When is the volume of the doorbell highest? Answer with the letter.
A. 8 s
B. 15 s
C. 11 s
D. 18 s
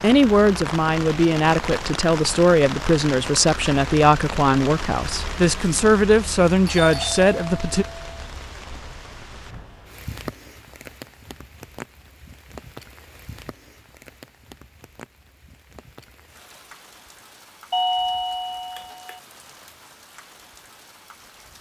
D.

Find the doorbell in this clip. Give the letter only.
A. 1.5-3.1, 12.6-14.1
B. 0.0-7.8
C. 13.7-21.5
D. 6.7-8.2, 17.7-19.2
D.